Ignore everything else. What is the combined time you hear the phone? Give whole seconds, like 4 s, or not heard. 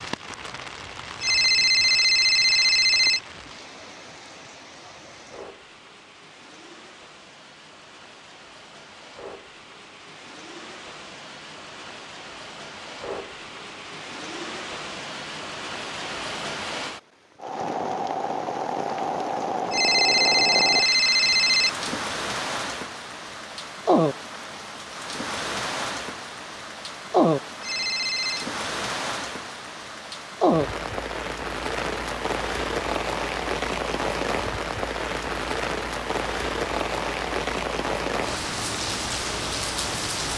5 s.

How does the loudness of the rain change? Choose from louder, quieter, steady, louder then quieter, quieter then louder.
louder.